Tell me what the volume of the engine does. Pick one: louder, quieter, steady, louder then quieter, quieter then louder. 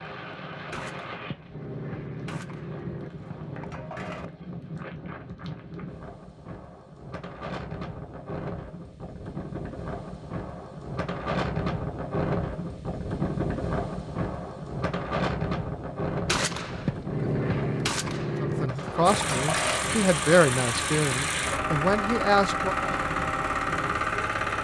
steady.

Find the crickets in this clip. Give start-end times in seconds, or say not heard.
not heard.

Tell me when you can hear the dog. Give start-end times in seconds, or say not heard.
not heard.